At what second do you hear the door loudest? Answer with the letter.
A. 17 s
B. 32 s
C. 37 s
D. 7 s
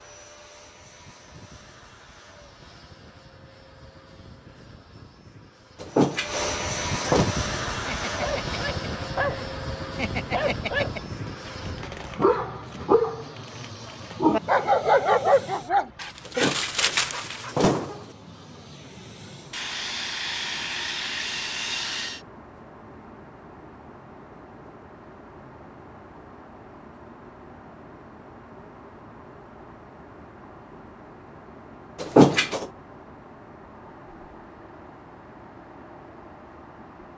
B.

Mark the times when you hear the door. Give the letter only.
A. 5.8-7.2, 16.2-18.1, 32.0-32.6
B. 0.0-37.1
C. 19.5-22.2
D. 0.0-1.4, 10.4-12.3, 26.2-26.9
A.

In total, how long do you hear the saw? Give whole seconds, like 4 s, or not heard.
3 s.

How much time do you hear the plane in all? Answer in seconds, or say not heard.
37 s.